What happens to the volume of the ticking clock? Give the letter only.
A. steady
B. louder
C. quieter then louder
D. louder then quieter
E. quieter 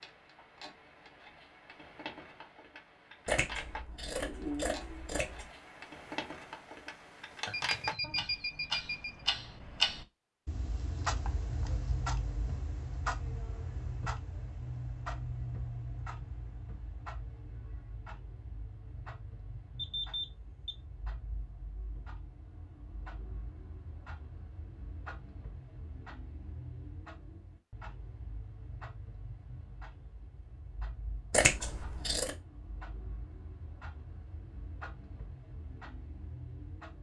D.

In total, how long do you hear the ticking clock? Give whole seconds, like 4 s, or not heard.
37 s.